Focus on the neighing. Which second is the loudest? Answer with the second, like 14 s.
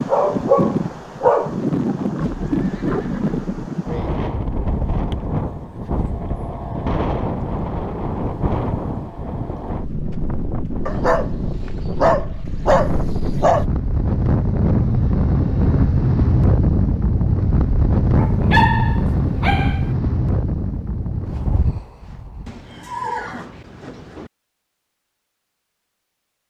23 s.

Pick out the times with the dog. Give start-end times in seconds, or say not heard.
0.1-1.6, 10.8-13.7, 18.1-19.9.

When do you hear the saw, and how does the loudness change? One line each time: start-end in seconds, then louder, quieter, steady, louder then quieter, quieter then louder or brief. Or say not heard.
not heard.